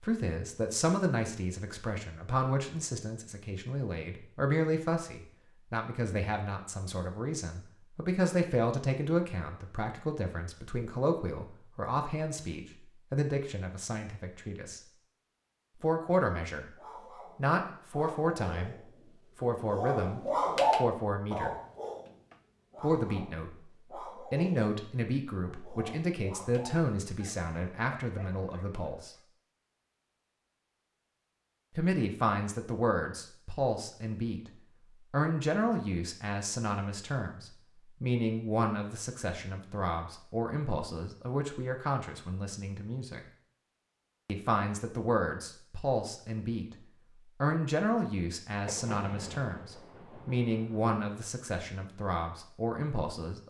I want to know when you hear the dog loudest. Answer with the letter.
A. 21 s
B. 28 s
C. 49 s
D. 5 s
A.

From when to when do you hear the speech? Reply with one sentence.
The speech can be heard from 0.0 to 14.8 s, from 15.8 to 16.6 s, from 17.4 to 21.6 s, from 22.8 to 29.1 s, from 31.8 to 43.2 s and from 44.2 to 53.4 s.